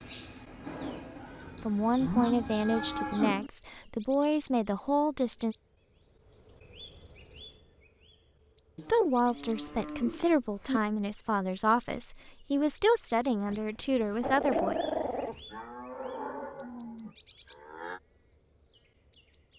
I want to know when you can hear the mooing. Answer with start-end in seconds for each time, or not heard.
2.0-3.5, 8.8-10.8, 15.5-18.0.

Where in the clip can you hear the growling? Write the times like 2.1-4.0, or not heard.
13.4-15.3.